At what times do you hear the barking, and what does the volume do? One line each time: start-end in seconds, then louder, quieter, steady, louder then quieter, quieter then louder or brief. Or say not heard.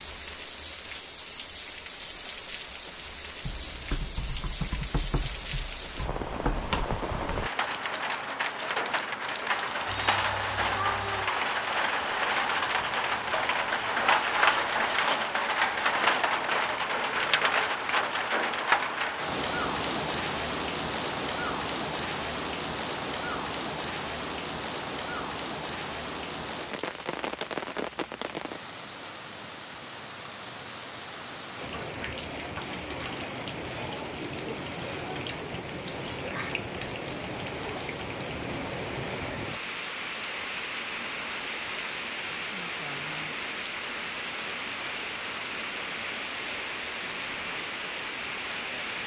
not heard.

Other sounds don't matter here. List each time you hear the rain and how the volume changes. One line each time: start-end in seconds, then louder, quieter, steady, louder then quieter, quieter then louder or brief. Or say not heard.
0.0-49.0 louder then quieter.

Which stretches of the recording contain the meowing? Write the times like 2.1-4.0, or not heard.
9.8-11.3.